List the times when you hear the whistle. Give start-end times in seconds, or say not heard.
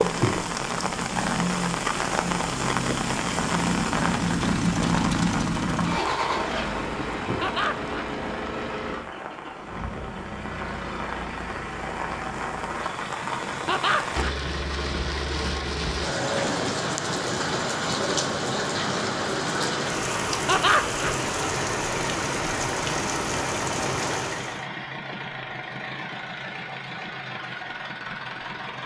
not heard.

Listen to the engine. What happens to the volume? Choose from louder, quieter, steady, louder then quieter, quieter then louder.
quieter.